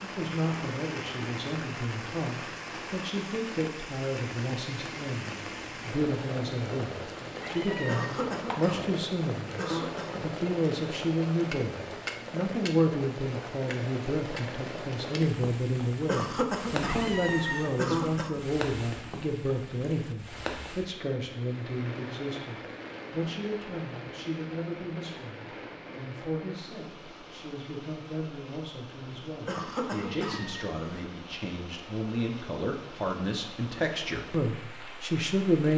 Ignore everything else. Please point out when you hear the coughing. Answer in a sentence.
The coughing can be heard from 7.8 to 10.2 s, from 16.1 to 18.4 s and from 29.4 to 31.1 s.